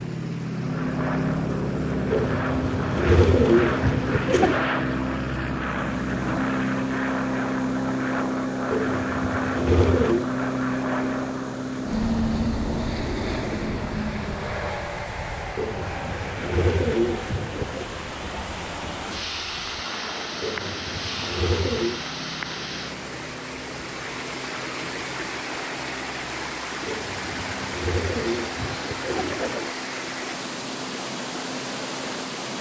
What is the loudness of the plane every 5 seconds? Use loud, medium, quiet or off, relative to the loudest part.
loud, loud, loud, medium, quiet, quiet, quiet.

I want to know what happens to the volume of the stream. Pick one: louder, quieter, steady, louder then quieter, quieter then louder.
louder.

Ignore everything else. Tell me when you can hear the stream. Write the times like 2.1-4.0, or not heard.
0.0-32.5.